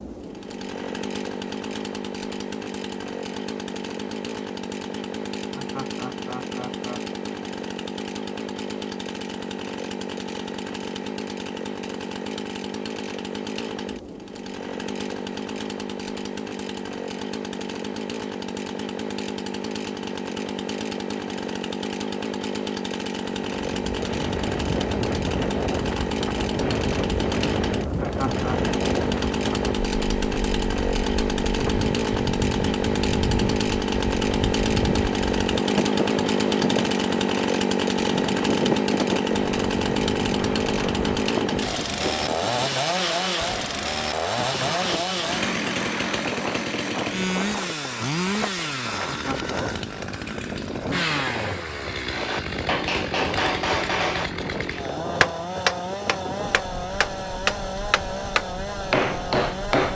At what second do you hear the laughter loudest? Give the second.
28 s.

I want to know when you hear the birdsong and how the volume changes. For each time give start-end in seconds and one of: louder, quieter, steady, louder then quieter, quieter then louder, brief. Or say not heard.
not heard.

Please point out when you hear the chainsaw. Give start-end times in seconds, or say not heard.
0.0-59.9.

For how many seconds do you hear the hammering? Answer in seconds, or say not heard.
8 s.